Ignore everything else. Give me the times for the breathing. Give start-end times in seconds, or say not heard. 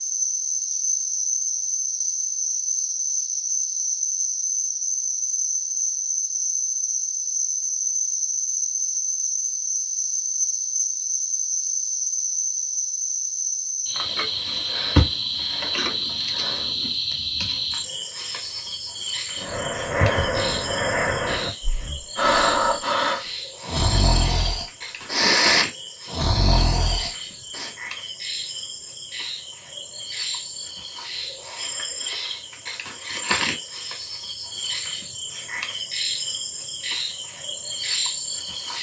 19.4-27.7.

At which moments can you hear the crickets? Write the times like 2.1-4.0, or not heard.
0.0-38.7.